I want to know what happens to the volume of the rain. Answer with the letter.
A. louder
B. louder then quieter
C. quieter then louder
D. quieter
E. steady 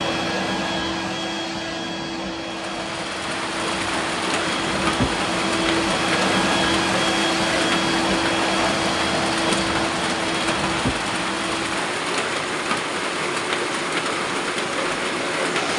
E.